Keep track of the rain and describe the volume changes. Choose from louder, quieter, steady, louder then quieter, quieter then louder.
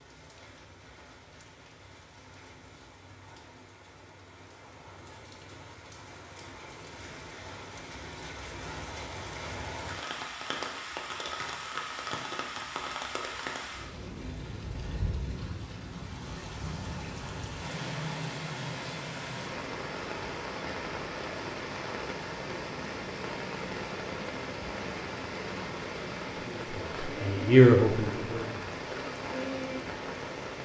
louder.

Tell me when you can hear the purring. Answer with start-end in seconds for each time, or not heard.
not heard.